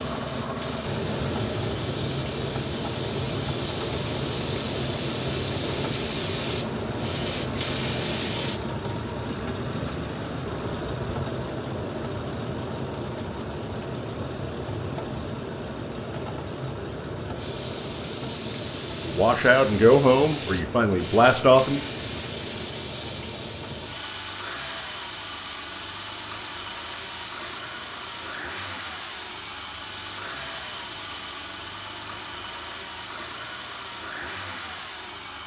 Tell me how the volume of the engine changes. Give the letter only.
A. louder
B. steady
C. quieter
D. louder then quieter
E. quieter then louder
C.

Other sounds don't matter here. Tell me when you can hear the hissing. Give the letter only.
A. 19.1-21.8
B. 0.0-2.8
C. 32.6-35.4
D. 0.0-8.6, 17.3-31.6
D.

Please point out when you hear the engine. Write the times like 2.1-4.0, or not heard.
0.0-35.4.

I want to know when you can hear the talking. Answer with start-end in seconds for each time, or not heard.
19.1-21.8.